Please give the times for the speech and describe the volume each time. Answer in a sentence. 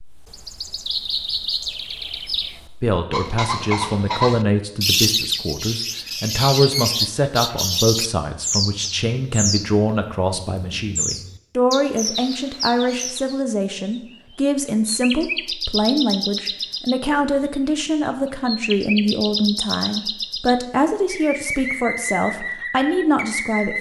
The speech can be heard from 2.8 to 23.7 s, at a steady volume.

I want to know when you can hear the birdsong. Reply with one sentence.
The birdsong can be heard from 0.0 to 23.7 s.